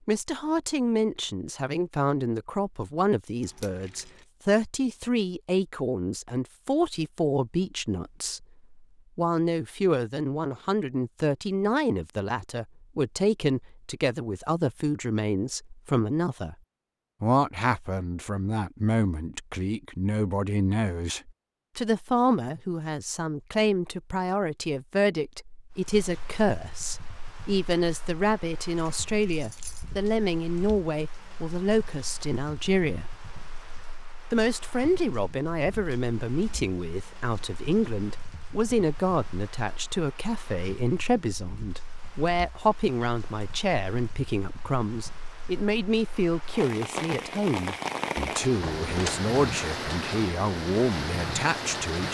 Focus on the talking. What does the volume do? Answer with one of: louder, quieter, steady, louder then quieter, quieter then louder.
steady.